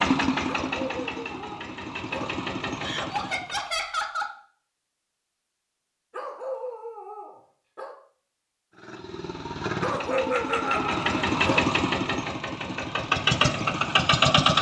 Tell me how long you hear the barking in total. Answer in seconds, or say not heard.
6 s.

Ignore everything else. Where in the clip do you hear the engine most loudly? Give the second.
14 s.